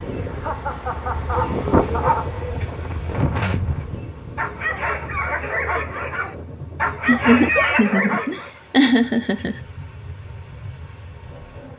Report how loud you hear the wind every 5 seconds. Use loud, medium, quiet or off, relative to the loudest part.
loud, medium, quiet.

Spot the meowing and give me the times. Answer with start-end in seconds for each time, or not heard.
1.3-3.2, 7.2-8.0.